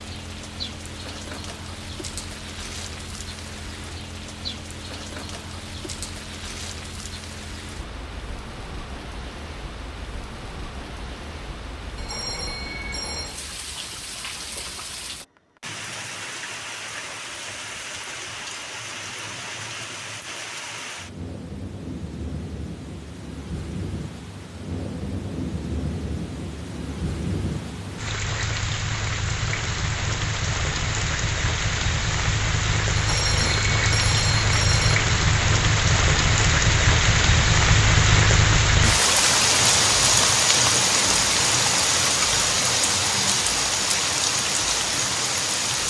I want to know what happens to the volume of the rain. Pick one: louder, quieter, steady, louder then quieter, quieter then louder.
louder.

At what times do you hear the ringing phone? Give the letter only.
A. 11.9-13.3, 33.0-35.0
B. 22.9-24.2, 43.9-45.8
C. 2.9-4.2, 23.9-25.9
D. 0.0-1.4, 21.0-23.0
A.